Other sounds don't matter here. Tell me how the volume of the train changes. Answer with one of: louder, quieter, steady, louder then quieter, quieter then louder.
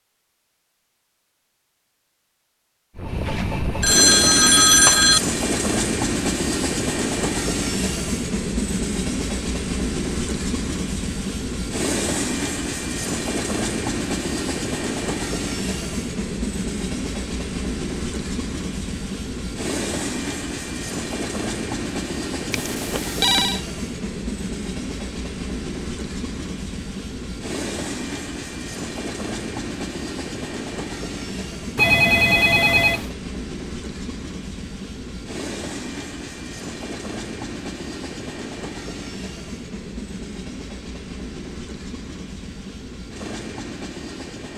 quieter.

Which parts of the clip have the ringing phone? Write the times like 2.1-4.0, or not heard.
3.2-5.2, 22.5-23.6, 31.8-33.1.